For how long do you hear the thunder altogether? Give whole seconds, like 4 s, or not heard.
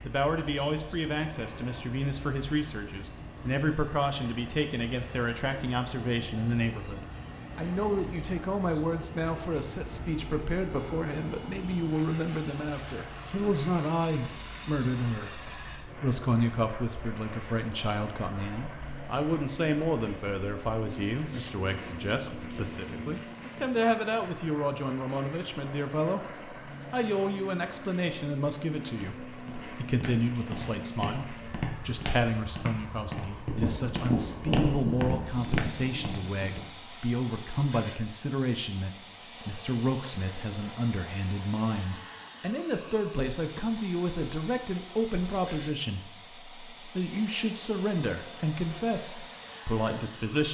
3 s.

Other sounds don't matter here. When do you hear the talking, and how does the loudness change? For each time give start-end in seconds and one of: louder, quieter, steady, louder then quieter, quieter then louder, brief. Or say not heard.
0.0-50.4 steady.